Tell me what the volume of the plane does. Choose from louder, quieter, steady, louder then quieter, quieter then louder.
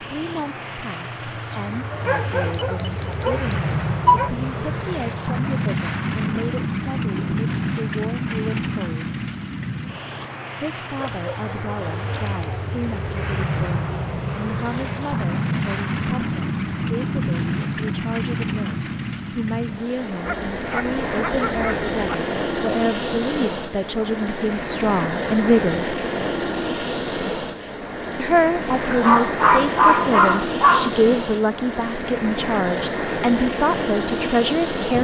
steady.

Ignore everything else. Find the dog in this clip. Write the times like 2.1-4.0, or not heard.
1.5-4.3, 10.9-12.7, 20.2-22.1, 28.9-30.9.